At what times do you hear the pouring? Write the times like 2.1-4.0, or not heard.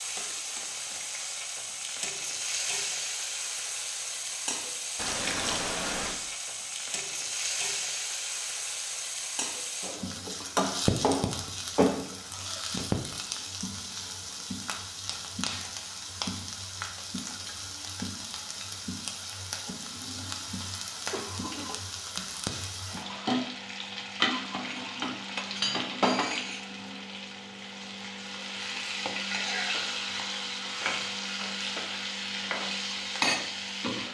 5.0-6.2.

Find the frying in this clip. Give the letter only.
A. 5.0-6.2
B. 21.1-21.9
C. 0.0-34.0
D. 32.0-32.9
C.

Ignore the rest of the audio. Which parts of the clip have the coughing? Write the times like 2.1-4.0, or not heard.
21.1-21.9.